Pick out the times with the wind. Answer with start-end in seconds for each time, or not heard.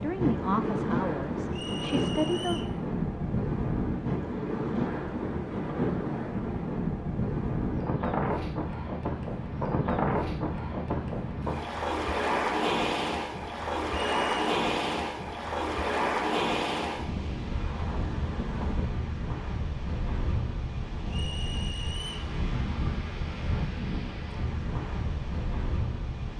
0.0-26.3.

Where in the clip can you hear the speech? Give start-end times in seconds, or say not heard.
0.0-2.6.